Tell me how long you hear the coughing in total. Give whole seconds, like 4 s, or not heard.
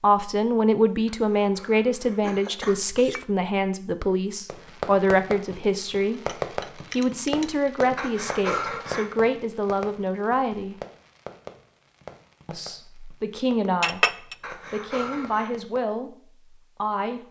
4 s.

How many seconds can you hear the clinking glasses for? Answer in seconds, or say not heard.
3 s.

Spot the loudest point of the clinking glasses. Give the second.
14 s.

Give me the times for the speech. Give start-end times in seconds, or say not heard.
0.0-10.8, 12.4-17.2.